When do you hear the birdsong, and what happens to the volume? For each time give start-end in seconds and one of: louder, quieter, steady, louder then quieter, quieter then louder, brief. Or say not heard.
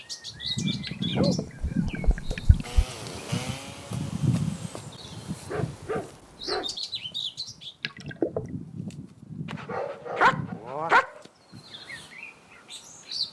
0.0-13.2 quieter.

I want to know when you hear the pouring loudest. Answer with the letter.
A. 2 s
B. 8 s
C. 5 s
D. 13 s
B.